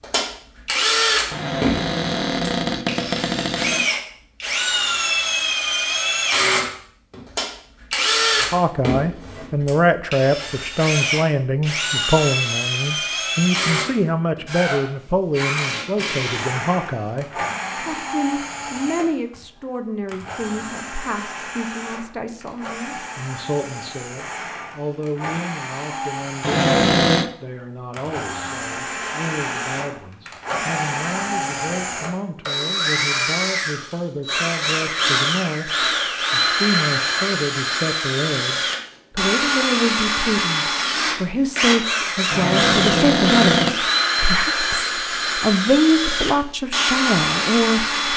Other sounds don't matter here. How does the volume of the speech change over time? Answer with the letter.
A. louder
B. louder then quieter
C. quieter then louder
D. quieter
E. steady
C.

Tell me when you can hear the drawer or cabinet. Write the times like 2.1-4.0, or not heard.
1.3-3.9, 26.4-27.3, 42.3-43.8.